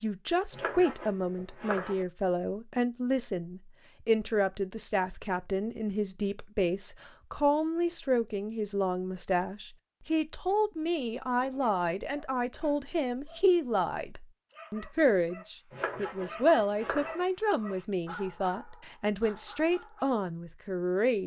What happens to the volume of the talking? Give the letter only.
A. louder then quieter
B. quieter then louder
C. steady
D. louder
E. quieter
C.